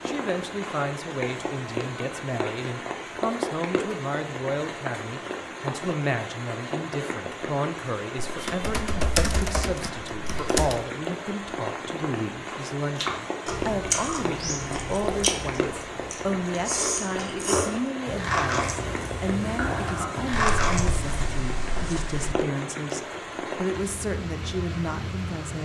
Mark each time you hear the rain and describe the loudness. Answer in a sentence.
The rain can be heard from 0.0 to 25.6 s, at a steady volume.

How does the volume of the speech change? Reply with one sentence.
The volume of the speech stays about the same.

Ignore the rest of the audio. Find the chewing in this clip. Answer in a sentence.
The chewing can be heard from 12.9 to 21.2 s.